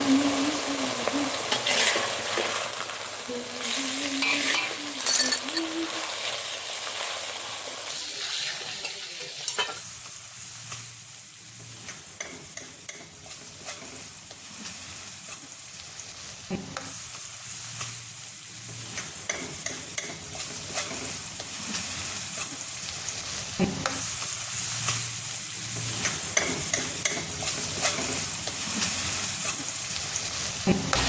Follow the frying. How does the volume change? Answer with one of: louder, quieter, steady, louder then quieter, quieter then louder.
quieter then louder.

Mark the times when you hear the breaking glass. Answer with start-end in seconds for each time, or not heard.
5.0-5.6.